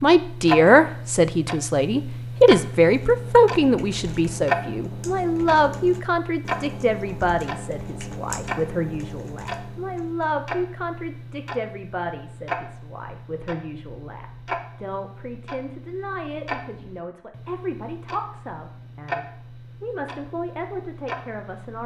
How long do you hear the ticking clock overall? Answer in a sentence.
The ticking clock can be heard for 22 seconds in total.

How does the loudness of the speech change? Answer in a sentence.
The volume of the speech goes down.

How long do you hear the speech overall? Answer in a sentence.
You can hear the speech for 22 seconds altogether.